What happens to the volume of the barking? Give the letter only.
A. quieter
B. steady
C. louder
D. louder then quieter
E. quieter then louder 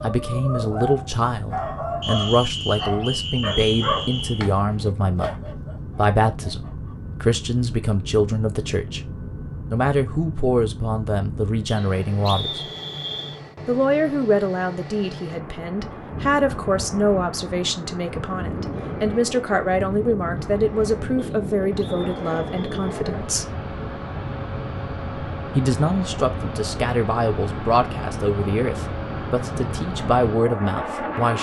A.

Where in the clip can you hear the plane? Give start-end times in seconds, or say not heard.
0.0-31.3.